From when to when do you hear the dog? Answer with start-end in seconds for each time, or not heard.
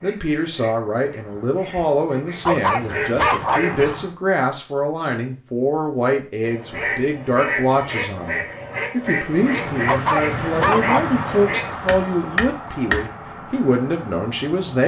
2.5-4.0, 9.8-11.4.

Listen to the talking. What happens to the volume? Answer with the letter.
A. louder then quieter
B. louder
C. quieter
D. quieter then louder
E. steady
E.